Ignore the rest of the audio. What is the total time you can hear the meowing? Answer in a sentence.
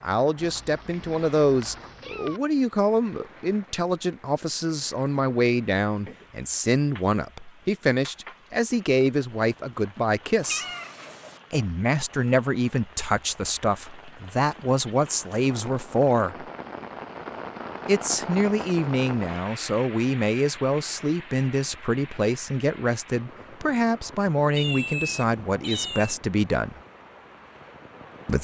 You can hear the meowing for 5 seconds altogether.